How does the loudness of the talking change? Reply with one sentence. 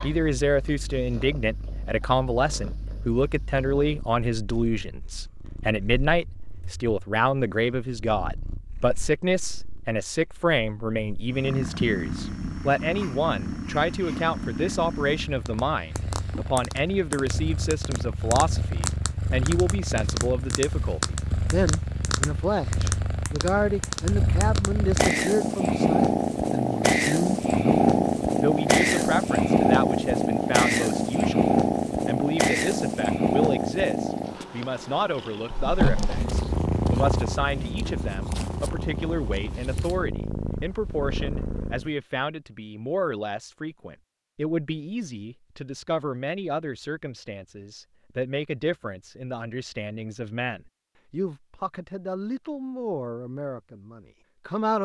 The volume of the talking goes down.